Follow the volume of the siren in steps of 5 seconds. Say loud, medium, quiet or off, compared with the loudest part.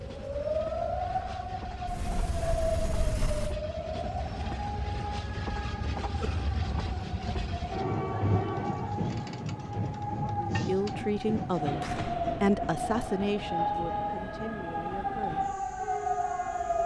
loud, medium, loud, loud.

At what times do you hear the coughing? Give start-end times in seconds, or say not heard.
not heard.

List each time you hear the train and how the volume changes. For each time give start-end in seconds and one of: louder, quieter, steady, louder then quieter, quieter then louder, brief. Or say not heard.
0.0-16.8 louder then quieter.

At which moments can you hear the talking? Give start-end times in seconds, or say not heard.
10.3-15.4.